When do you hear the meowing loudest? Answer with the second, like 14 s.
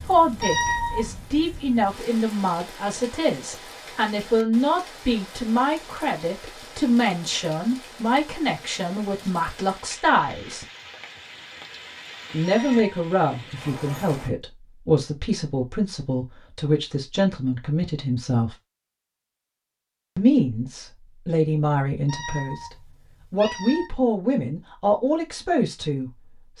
1 s.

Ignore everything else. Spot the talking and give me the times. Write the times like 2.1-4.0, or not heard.
0.0-10.7, 12.3-18.6, 20.1-22.6, 23.3-26.5.